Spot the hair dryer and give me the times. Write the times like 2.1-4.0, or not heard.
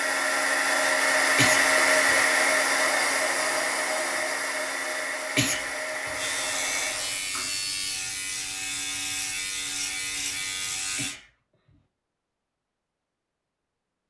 0.0-7.3.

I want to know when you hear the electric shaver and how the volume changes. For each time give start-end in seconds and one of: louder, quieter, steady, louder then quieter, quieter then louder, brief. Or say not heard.
6.1-11.2 steady.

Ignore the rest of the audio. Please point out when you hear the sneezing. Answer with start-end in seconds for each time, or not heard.
1.4-2.1, 5.3-6.2, 10.9-11.8.